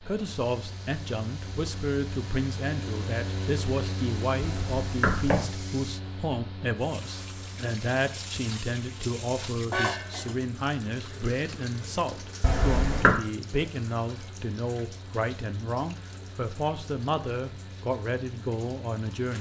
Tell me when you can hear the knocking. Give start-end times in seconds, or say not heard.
4.4-5.5, 12.4-13.2.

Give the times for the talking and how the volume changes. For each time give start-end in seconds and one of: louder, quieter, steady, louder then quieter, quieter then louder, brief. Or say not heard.
0.0-19.3 steady.